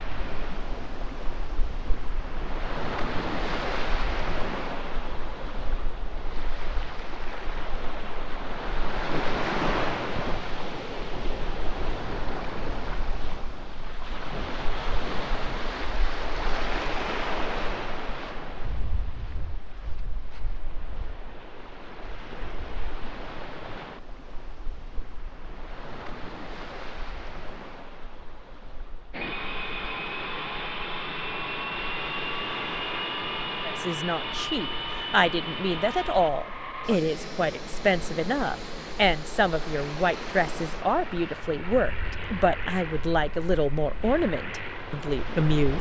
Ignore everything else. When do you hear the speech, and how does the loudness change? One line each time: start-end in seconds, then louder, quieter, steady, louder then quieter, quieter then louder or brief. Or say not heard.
33.6-45.7 steady.